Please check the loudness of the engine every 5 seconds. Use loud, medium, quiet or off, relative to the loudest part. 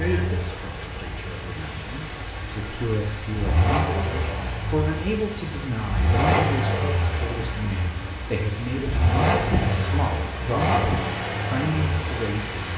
medium, loud, loud.